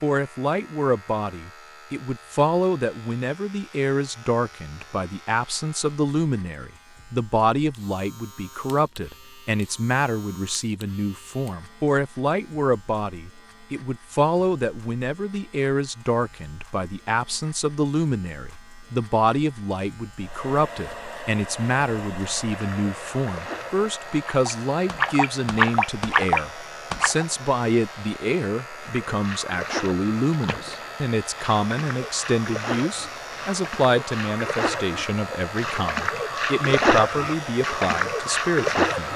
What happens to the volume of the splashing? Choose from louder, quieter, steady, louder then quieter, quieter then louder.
quieter then louder.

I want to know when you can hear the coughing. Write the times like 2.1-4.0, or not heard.
not heard.